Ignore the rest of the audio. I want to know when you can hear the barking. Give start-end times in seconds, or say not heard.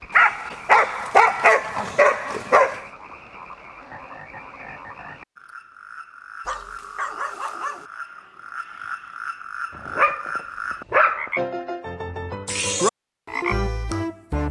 0.1-2.8, 6.5-7.8, 9.8-11.3.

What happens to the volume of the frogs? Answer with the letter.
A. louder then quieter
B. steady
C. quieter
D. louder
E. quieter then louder
D.